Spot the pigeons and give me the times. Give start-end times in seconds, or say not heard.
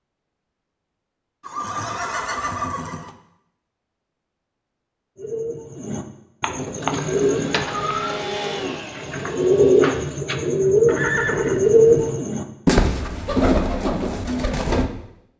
5.2-14.9.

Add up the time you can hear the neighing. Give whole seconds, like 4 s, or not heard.
4 s.